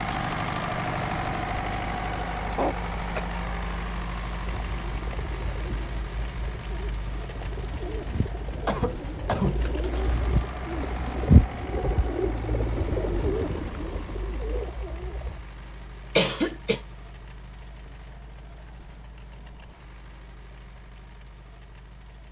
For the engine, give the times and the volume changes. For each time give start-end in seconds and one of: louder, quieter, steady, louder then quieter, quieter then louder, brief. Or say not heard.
0.0-22.2 quieter.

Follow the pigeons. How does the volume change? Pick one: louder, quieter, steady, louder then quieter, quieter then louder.
louder then quieter.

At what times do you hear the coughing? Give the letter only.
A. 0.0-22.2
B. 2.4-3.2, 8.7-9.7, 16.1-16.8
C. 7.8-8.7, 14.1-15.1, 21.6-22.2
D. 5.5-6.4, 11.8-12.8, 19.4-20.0
B.